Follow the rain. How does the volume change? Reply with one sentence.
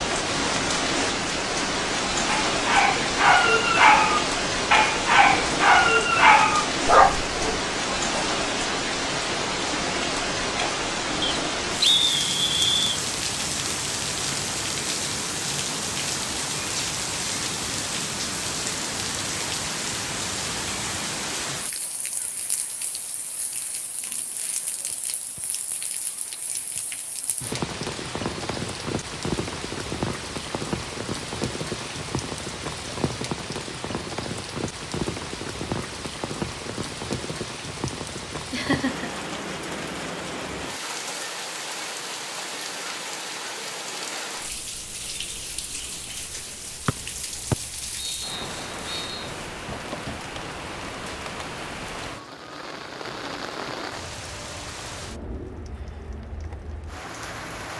The volume of the rain goes down.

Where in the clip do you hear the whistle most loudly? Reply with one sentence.
The volume of the whistle peaks at 12 seconds.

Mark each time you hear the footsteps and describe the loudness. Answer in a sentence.
You can't hear the footsteps here.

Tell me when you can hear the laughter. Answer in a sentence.
You can hear the laughter from 38.5 to 39.1 s.